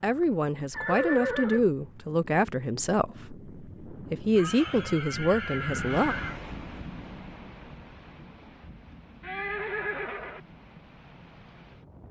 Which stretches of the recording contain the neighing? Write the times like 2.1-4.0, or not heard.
0.7-1.6, 4.3-6.4, 9.2-10.4.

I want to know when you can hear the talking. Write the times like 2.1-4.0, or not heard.
0.0-6.2.